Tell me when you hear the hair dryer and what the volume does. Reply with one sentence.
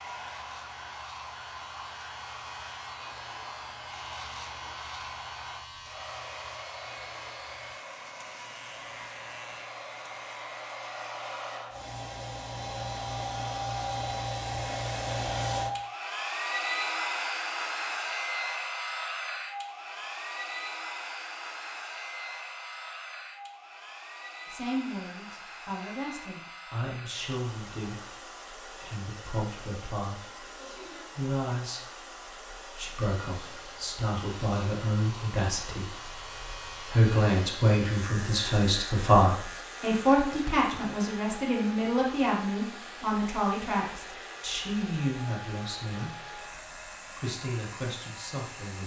You can hear the hair dryer from 0.0 to 48.8 s, getting louder then quieter.